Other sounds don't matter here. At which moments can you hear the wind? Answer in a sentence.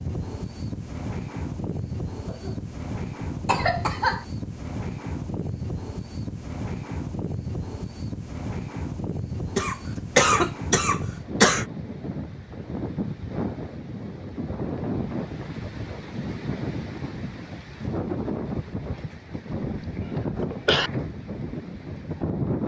The wind can be heard from 0.0 to 22.6 s.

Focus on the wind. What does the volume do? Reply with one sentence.
The volume of the wind stays about the same.